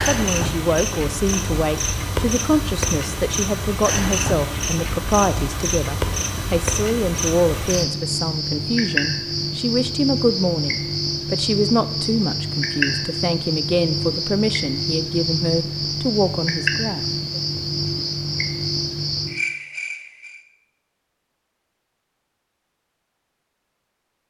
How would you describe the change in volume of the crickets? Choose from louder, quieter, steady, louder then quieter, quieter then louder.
steady.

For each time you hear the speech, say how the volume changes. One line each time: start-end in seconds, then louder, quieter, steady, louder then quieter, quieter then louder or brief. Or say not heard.
0.0-17.4 steady.